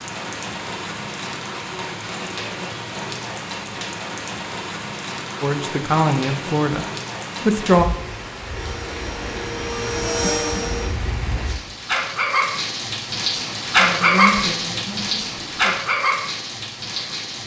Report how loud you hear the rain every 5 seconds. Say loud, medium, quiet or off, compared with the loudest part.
medium, medium, loud, loud.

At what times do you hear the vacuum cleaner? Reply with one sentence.
The vacuum cleaner can be heard from 8.5 to 10.9 s.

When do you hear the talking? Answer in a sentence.
The talking can be heard from 5.4 to 7.8 s and from 13.8 to 15.8 s.